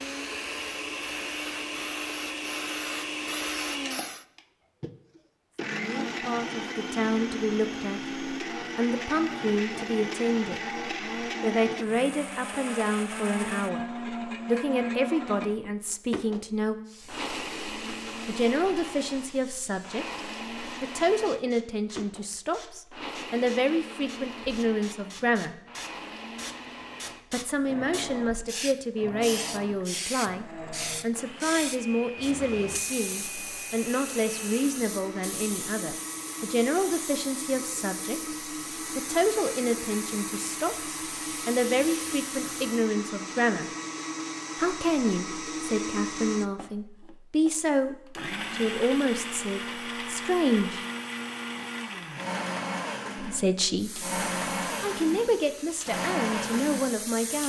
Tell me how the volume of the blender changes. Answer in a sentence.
The loudness of the blender goes down, then up.